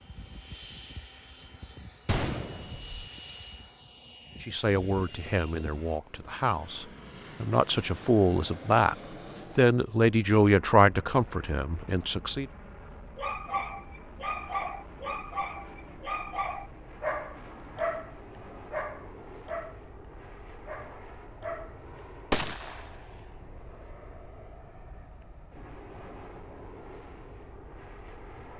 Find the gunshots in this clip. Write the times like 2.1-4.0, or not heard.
2.0-3.1, 22.3-22.9.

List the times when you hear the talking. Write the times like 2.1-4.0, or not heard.
4.4-8.9, 9.6-12.4.